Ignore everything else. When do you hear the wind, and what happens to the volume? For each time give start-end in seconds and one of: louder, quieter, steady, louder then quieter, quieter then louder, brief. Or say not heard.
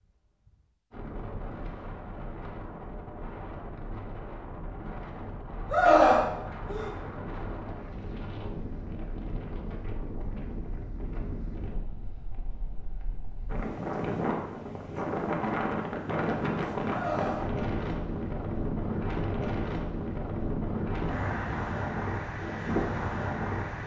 0.0-23.8 louder.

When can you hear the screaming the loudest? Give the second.
6 s.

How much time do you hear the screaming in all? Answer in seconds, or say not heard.
2 s.